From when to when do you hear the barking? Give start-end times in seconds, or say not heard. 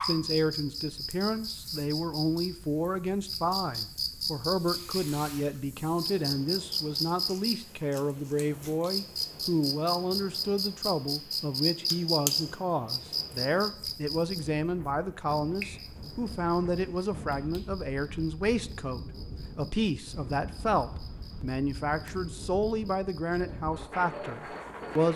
not heard.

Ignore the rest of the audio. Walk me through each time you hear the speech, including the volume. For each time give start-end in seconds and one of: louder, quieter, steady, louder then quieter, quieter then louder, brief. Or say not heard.
0.0-25.1 steady.